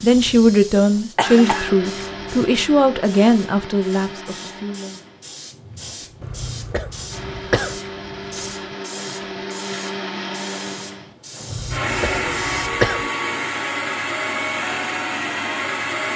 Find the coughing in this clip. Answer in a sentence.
You can hear the coughing from 1.1 to 1.8 s, from 6.2 to 7.8 s and from 11.5 to 13.1 s.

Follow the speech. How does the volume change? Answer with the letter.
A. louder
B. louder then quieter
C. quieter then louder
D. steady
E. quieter
E.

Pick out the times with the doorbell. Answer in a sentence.
You can't hear the doorbell here.